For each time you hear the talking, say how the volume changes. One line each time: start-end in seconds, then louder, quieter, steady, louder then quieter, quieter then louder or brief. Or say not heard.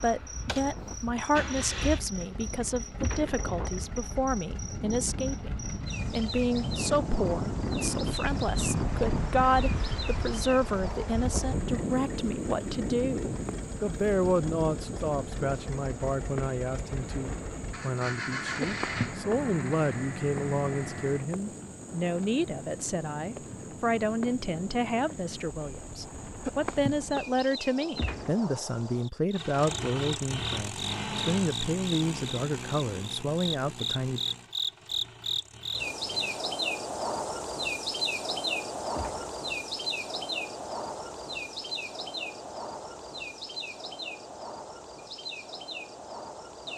0.0-34.2 steady.